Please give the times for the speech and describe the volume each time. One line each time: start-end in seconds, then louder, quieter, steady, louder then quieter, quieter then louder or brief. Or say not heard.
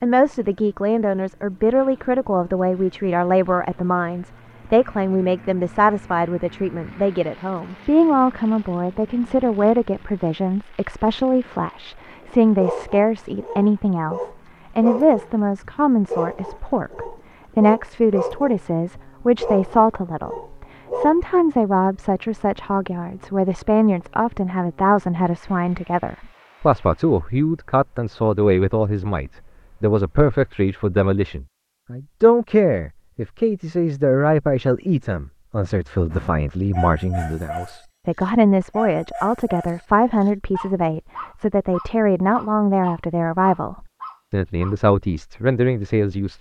0.0-46.3 steady.